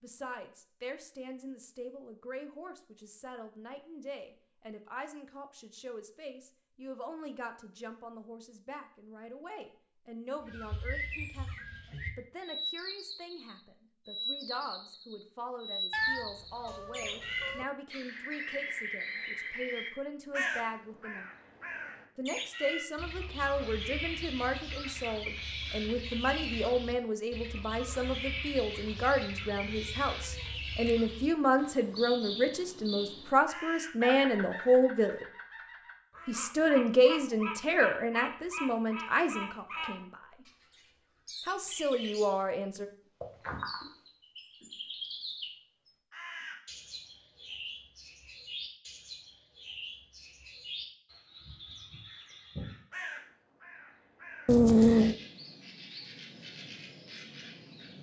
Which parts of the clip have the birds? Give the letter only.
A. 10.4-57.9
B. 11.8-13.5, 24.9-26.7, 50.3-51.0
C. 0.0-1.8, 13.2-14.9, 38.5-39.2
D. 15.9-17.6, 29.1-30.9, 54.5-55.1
A.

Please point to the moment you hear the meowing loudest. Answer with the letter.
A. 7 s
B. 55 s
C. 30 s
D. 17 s
B.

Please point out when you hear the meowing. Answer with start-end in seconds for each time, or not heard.
15.9-17.6, 29.1-30.9, 54.5-55.1.